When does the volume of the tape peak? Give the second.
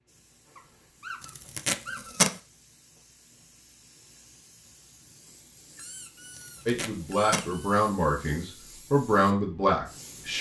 2 s.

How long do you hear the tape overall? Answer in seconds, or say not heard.
2 s.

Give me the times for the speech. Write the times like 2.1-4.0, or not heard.
6.7-10.3.